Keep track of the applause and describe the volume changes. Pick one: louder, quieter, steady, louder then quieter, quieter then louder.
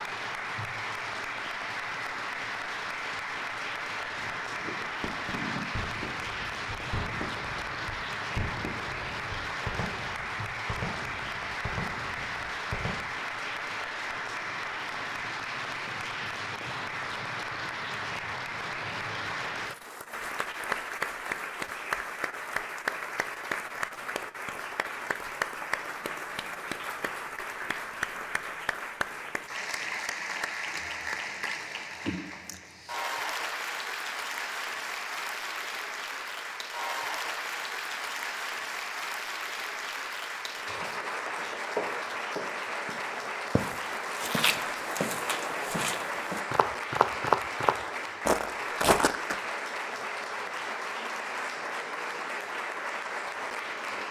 steady.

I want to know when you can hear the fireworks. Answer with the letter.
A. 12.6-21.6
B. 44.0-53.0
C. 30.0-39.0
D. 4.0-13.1
D.